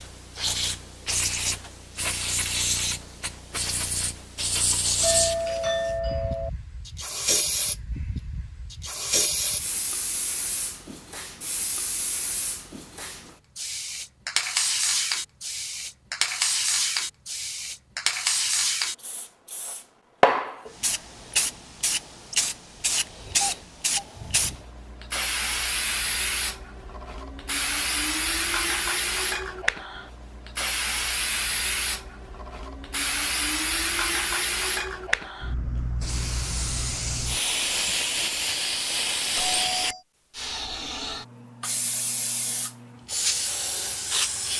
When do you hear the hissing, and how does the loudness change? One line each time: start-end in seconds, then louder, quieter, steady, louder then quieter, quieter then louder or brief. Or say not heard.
0.0-44.5 steady.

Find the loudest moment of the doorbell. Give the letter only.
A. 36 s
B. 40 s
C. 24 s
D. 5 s
D.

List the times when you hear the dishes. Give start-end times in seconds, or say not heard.
not heard.